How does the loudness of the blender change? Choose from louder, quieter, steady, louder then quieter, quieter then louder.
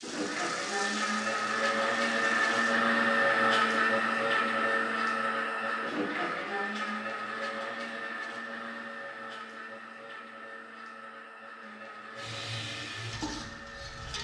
quieter.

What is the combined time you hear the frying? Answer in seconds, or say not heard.
5 s.